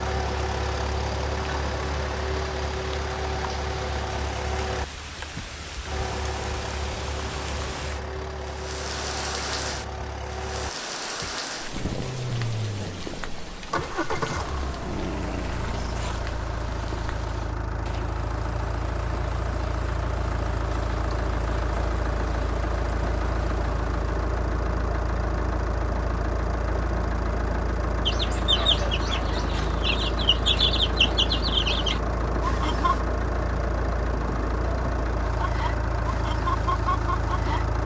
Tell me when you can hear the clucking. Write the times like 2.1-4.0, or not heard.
28.1-33.0, 35.2-37.6.